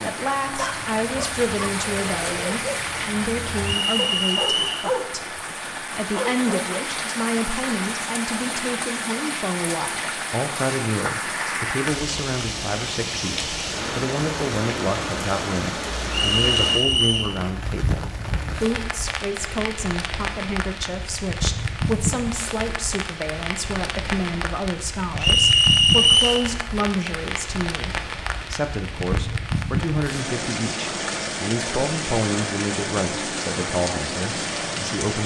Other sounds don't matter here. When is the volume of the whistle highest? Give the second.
26 s.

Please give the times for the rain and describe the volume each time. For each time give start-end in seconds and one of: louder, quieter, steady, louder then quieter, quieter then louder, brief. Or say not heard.
0.0-35.2 steady.